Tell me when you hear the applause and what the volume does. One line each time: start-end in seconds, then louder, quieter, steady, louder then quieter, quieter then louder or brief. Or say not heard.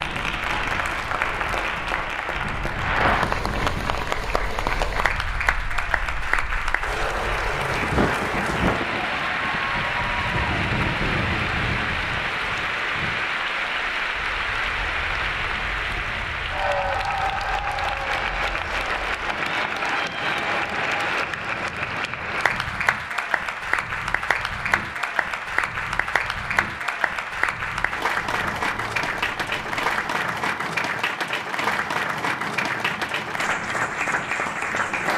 0.0-35.1 steady.